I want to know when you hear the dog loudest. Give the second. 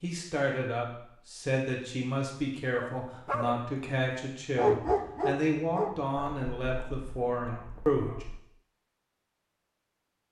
5 s.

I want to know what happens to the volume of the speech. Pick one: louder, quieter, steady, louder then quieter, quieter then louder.
steady.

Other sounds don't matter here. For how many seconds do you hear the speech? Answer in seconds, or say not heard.
8 s.